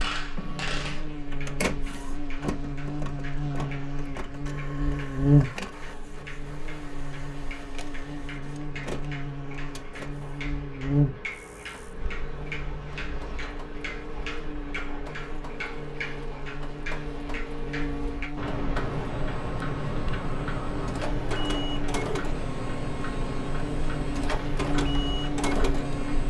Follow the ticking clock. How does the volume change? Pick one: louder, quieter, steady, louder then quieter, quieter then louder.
louder.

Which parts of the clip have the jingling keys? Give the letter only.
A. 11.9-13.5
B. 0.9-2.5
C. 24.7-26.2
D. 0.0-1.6
A.